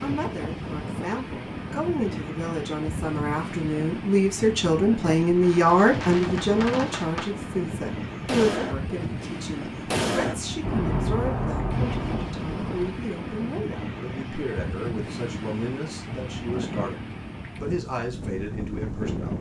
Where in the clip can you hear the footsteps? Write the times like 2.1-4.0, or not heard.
not heard.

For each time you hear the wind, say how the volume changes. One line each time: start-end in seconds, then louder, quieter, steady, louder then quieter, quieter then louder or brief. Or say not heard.
0.0-19.3 steady.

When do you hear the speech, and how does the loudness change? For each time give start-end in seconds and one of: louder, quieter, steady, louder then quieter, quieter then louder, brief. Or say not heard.
0.0-19.3 louder then quieter.